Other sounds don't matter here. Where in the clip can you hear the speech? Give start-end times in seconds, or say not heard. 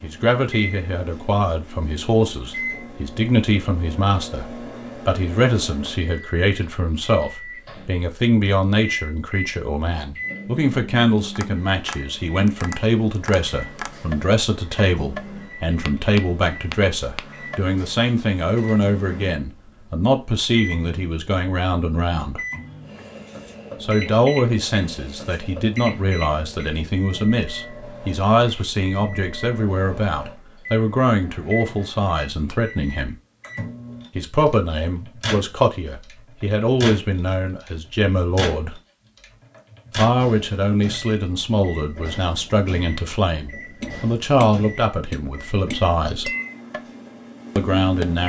0.0-22.4, 23.8-33.1, 34.1-38.8, 40.0-46.3, 47.5-48.2.